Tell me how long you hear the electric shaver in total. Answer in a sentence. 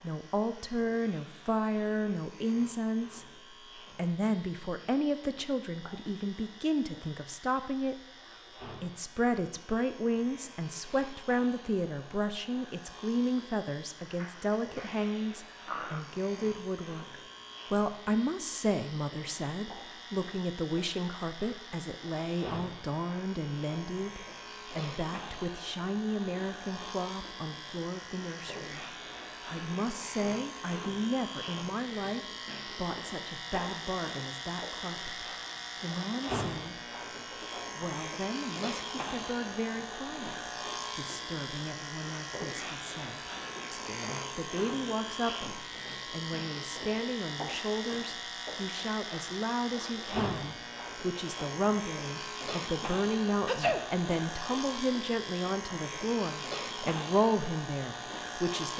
You can hear the electric shaver for 59 seconds altogether.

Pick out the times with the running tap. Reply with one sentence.
The running tap can't be heard in this clip.